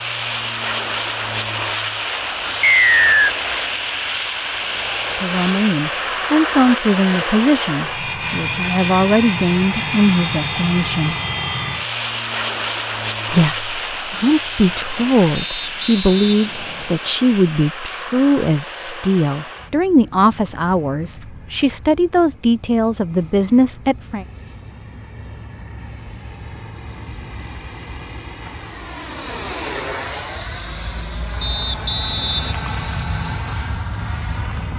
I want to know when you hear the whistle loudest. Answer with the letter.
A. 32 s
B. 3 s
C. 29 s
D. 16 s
B.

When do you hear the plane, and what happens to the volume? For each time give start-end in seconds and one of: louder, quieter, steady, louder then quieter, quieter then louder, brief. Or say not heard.
0.0-34.7 quieter then louder.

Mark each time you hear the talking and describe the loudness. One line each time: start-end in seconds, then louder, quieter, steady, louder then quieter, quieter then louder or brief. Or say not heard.
5.2-11.2 quieter then louder
13.3-24.2 steady.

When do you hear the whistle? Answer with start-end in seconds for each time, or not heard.
2.6-3.4, 15.3-16.9, 31.4-32.5.